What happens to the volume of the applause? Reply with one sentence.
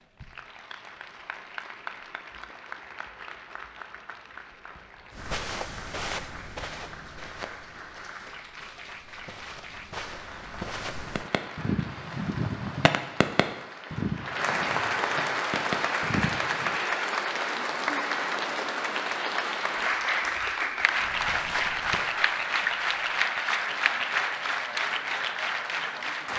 The volume of the applause goes up.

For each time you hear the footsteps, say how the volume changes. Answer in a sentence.
You can hear the footsteps from 5.1 to 11.3 s, getting quieter then louder; and briefly from 20.9 to 23.0 s.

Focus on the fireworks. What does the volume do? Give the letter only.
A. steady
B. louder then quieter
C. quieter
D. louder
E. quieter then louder
E.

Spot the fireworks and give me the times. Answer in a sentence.
The fireworks can be heard from 11.2 to 16.8 s.